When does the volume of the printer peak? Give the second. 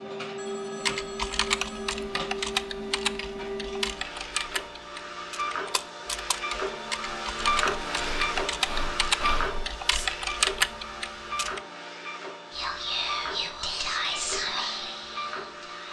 8 s.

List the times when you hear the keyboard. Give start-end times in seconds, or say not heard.
0.8-11.6.